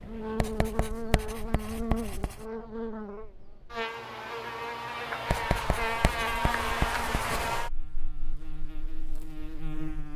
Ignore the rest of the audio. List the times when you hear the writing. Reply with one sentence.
You can hear the writing from 0.3 to 2.5 s and from 5.2 to 7.5 s.